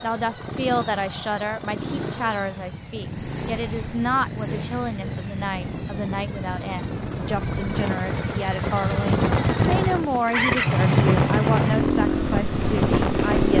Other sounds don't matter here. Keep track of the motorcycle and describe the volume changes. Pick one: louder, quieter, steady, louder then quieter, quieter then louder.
louder.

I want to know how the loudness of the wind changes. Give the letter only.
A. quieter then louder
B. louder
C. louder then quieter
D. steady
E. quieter
B.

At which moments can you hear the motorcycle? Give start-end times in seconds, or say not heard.
0.0-13.5.